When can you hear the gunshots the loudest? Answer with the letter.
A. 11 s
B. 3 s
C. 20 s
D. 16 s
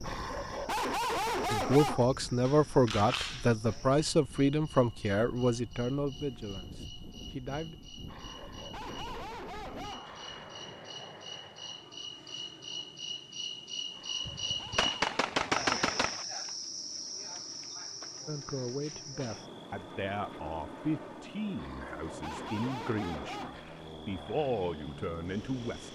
D.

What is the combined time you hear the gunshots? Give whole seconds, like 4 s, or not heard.
3 s.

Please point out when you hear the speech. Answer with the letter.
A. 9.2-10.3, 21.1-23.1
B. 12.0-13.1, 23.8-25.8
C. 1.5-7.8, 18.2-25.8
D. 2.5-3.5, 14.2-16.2
C.